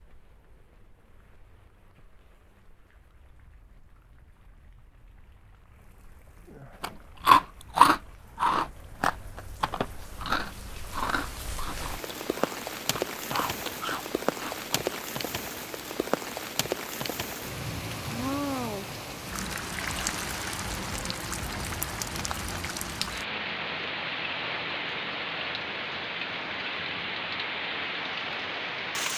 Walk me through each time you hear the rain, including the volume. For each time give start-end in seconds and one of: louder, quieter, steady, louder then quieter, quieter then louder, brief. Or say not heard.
0.0-29.1 louder.